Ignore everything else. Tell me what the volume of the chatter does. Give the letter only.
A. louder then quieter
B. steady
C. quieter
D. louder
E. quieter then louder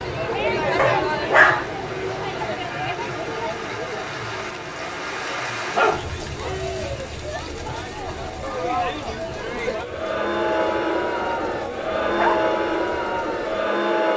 E.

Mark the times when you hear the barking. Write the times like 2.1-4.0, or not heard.
0.8-2.1, 5.7-6.3, 11.2-12.5.